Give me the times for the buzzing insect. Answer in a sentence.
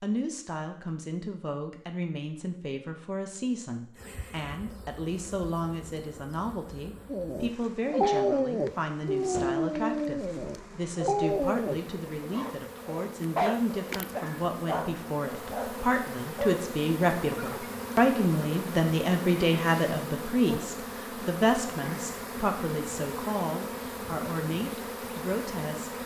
The buzzing insect can be heard from 4.0 to 26.0 s.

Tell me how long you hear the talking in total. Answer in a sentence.
You can hear the talking for 26 seconds altogether.